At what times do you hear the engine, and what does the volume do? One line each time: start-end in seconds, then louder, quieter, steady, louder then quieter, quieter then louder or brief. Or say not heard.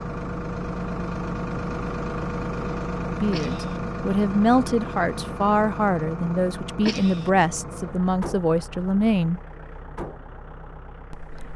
0.0-11.5 quieter.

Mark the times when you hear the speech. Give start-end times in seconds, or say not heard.
3.0-9.4, 11.1-11.5.